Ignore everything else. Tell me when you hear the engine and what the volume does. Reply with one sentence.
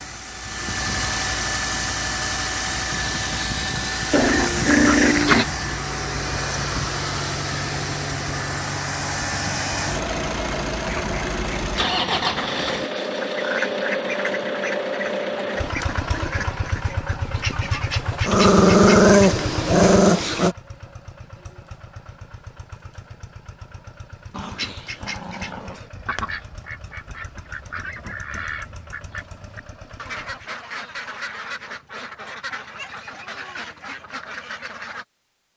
You can hear the engine from 0.0 to 30.5 s, getting quieter.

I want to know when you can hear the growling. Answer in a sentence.
The growling can be heard from 4.1 to 5.5 s, from 18.2 to 20.6 s and from 24.3 to 25.9 s.